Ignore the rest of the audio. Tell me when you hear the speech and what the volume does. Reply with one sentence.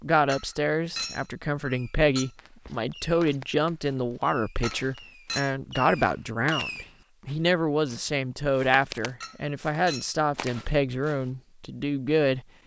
You can hear the speech from 0.0 to 12.4 s, at a steady volume.